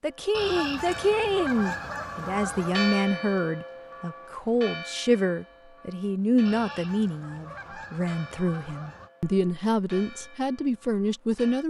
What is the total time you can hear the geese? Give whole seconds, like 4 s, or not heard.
5 s.